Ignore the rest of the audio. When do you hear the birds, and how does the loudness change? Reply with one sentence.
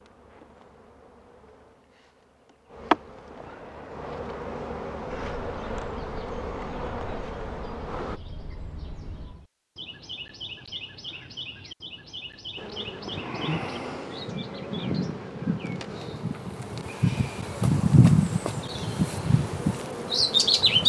You can hear the birds from 5.0 to 20.8 s, getting louder.